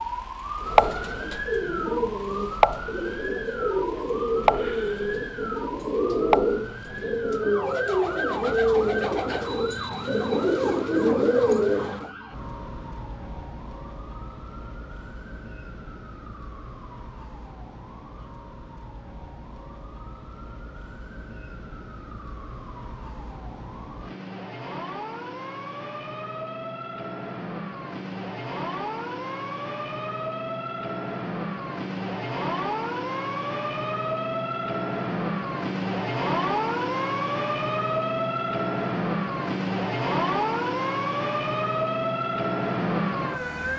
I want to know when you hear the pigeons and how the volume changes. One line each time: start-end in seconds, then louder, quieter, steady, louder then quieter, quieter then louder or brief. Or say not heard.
0.6-12.1 louder.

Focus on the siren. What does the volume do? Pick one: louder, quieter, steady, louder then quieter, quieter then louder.
quieter then louder.